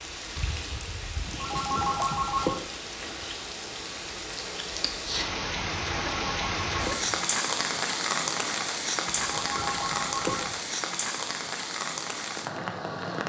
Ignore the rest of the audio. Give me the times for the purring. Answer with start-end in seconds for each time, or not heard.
not heard.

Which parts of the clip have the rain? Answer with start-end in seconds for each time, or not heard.
0.0-13.2.